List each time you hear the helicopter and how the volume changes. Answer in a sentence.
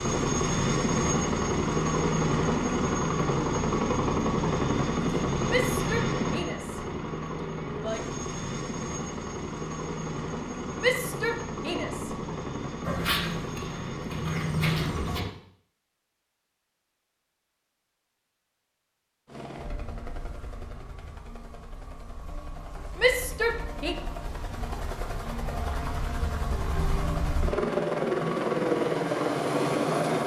You can hear the helicopter from 0.0 to 15.3 s, getting quieter; and from 19.2 to 30.2 s, getting louder.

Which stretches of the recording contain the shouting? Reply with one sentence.
You can hear the shouting from 5.5 to 8.1 s, from 10.8 to 12.2 s and from 22.9 to 23.9 s.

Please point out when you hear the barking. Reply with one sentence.
You can hear the barking from 12.8 to 15.2 s.